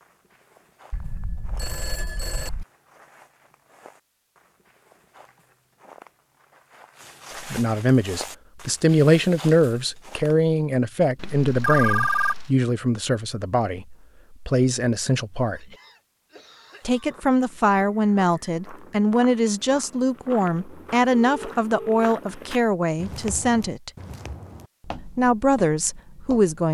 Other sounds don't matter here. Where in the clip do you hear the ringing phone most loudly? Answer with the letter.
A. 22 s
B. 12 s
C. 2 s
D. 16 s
B.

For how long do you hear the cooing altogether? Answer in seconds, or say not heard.
not heard.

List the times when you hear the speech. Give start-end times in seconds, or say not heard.
7.4-15.7, 16.9-23.9, 25.1-26.6.